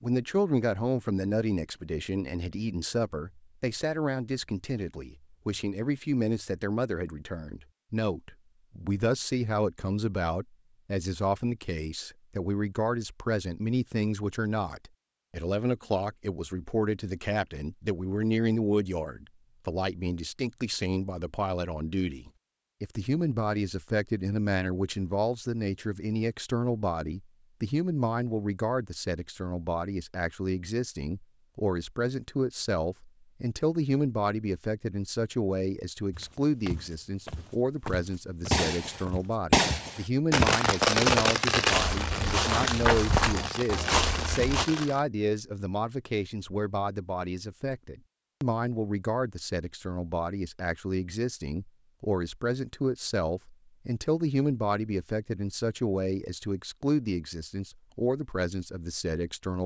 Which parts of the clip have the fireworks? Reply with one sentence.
You can hear the fireworks from 38.5 to 45.0 s.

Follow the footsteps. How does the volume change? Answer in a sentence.
The loudness of the footsteps goes up.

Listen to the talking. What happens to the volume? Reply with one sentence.
The volume of the talking stays about the same.